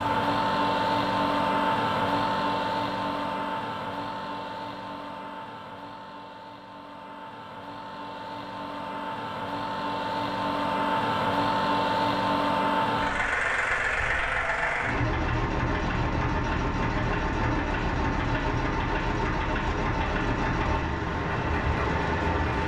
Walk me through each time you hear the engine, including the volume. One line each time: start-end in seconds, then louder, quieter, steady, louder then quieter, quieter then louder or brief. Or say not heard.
0.0-22.6 quieter then louder.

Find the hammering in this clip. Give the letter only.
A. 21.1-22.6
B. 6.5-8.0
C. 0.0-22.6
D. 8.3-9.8
A.